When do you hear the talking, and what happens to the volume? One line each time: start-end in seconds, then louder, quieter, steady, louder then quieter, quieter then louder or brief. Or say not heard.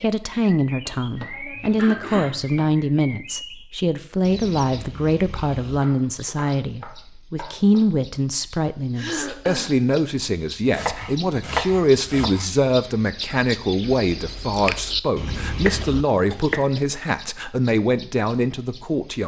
0.0-19.2 steady.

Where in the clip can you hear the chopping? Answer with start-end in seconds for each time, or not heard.
0.8-2.8, 5.8-7.8, 10.7-12.5, 15.6-16.7.